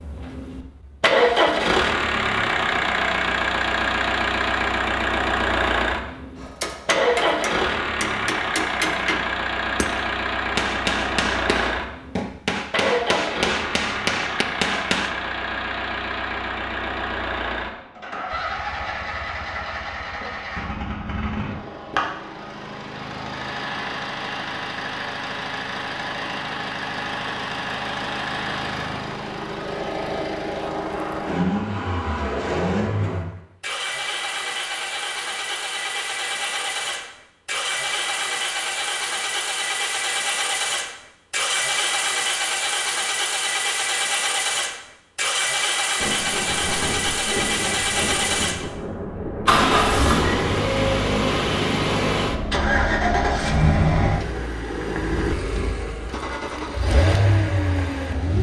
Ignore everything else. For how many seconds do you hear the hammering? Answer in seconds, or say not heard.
9 s.